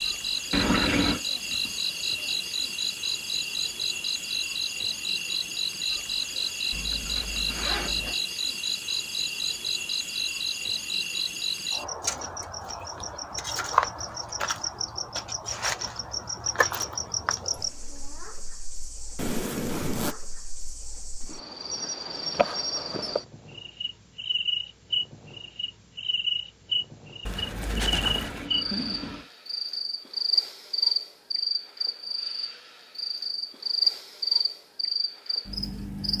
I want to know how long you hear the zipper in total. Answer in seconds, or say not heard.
4 s.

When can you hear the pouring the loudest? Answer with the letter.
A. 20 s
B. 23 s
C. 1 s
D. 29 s
C.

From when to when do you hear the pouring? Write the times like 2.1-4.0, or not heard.
0.5-1.2, 27.9-29.3.